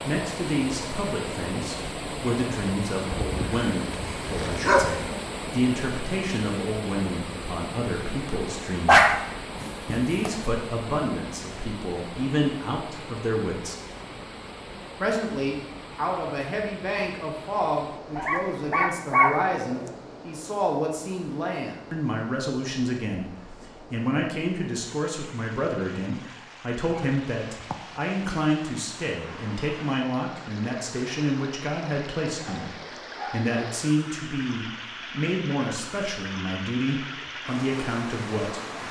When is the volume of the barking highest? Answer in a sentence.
The volume of the barking peaks at 9 seconds.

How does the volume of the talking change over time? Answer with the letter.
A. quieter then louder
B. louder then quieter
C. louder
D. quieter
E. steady
E.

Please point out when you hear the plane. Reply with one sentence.
The plane can't be heard in this clip.